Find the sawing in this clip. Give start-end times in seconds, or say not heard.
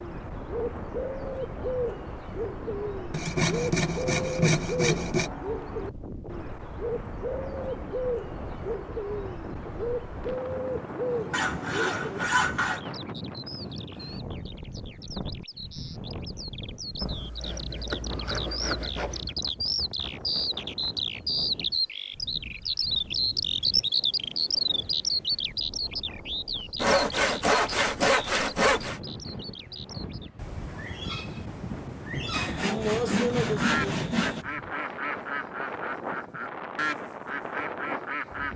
3.1-5.3, 11.3-12.8, 17.0-19.4, 26.8-29.0, 32.3-34.5.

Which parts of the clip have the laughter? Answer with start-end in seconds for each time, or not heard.
not heard.